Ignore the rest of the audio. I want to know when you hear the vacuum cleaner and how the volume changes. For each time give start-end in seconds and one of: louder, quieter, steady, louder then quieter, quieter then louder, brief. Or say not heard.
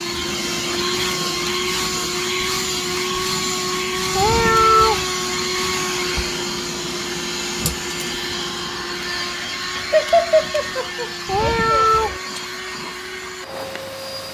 0.0-14.3 quieter.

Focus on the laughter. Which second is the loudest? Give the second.
10 s.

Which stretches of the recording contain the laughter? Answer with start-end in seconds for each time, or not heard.
9.8-12.1.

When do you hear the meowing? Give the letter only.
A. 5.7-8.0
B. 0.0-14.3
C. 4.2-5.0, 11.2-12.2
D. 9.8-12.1
C.